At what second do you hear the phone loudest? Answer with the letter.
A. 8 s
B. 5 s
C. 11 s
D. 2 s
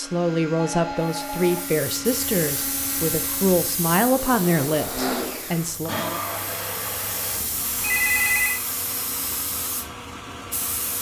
A.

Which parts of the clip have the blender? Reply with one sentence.
The blender can be heard from 0.0 to 10.9 s.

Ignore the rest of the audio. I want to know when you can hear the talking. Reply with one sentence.
The talking can be heard from 0.0 to 6.0 s.